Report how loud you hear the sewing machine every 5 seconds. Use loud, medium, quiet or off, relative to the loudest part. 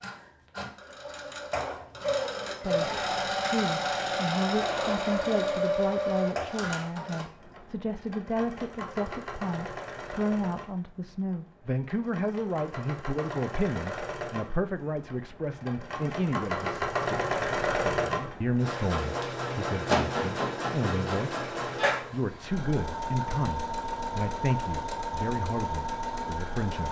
loud, loud, medium, loud, loud, loud.